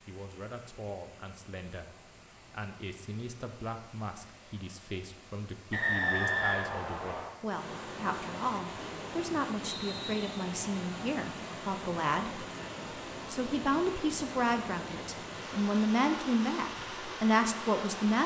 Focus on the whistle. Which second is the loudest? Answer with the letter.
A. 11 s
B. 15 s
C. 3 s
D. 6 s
D.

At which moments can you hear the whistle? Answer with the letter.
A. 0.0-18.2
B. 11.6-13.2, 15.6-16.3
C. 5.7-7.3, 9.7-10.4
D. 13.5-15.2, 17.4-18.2
C.